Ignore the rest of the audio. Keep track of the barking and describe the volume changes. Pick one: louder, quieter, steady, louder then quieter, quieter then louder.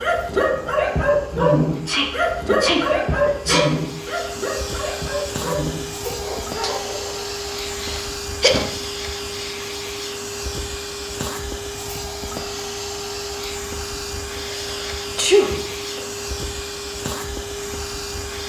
quieter.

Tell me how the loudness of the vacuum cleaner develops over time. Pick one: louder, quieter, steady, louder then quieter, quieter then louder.
louder.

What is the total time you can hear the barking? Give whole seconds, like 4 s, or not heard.
7 s.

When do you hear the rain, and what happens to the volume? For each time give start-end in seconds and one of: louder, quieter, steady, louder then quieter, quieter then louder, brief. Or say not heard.
not heard.